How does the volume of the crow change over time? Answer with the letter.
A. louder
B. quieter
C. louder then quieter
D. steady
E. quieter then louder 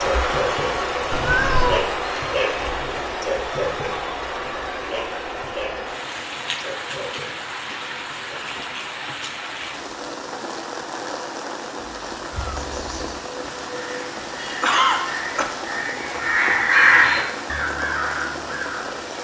C.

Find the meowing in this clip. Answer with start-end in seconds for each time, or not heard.
1.1-1.9, 12.3-13.2.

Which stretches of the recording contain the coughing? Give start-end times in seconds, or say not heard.
14.6-15.5.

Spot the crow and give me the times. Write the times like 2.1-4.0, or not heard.
13.7-18.9.